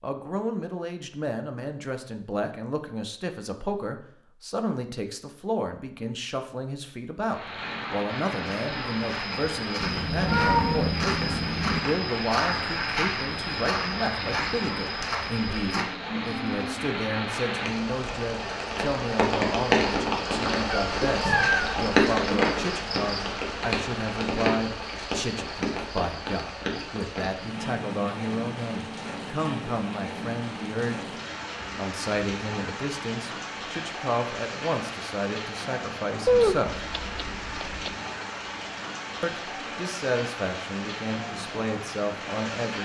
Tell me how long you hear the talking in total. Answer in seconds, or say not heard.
40 s.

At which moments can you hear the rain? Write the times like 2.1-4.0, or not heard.
7.2-42.8.